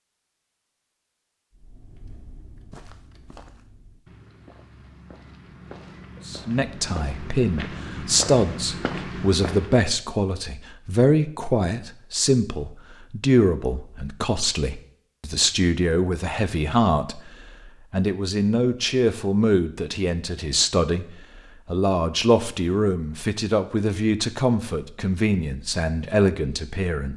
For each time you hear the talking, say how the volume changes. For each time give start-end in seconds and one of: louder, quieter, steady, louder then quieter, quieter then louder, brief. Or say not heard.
6.2-27.1 steady.